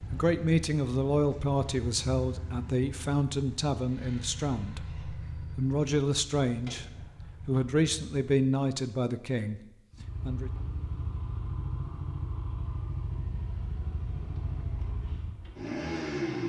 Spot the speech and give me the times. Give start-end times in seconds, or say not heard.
0.0-4.8, 5.5-6.8, 7.5-10.5.